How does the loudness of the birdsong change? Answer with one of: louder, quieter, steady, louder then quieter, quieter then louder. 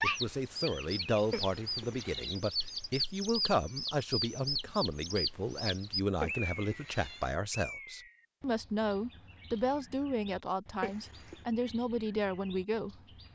quieter.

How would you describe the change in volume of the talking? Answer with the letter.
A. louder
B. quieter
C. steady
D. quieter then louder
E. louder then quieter
C.